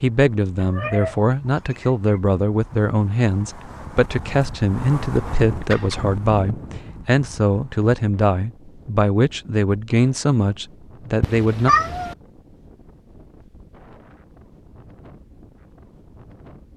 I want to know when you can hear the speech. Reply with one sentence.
The speech can be heard from 0.0 to 11.7 s.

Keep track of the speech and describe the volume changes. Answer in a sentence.
The volume of the speech stays about the same.